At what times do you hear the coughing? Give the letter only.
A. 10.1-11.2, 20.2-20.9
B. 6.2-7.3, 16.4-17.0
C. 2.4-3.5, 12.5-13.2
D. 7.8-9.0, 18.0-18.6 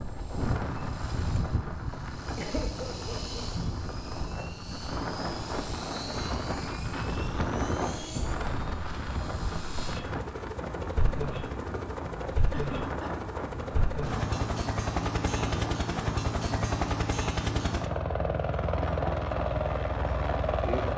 C.